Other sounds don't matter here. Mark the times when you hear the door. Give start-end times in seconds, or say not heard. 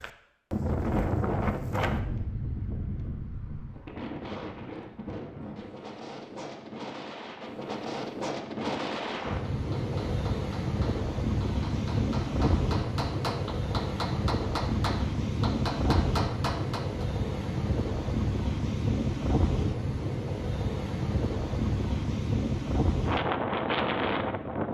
not heard.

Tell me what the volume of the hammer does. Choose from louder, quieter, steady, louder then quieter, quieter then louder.
louder.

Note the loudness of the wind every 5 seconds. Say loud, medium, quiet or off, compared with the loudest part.
loud, medium, loud, loud, loud.